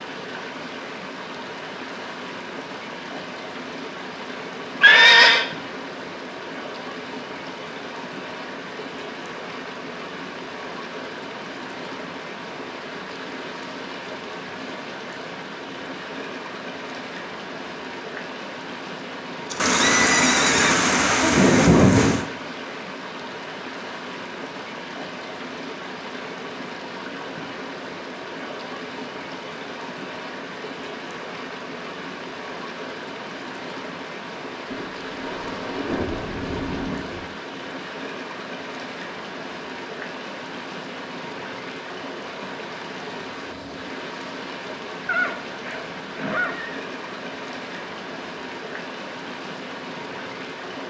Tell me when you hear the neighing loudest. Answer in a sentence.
The volume of the neighing peaks at 5 seconds.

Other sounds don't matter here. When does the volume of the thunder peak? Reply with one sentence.
The loudest moment of the thunder is at 22 seconds.